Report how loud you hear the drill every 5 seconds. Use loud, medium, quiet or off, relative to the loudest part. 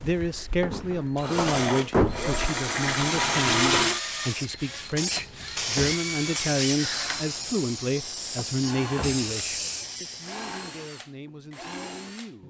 loud, medium, quiet.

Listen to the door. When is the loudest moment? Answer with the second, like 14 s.
2 s.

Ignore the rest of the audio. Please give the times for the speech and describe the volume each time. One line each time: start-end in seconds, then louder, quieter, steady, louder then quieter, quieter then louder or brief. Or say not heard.
0.0-12.4 quieter.